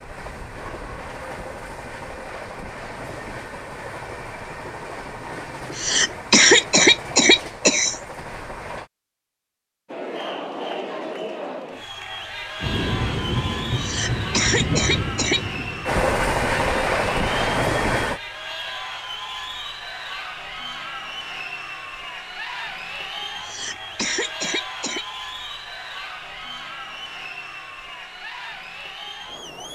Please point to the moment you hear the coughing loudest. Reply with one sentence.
The loudest moment of the coughing is at 6 seconds.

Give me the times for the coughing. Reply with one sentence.
You can hear the coughing from 5.8 to 8.0 s, from 13.8 to 15.4 s and from 23.4 to 25.1 s.